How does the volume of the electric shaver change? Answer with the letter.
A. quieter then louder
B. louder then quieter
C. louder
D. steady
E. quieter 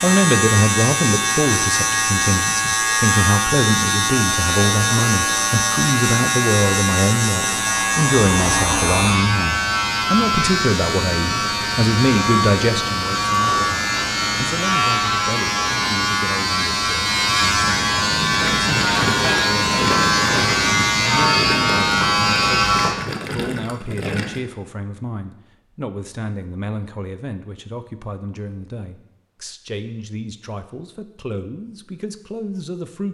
D.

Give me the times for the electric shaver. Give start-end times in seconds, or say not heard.
0.0-22.9.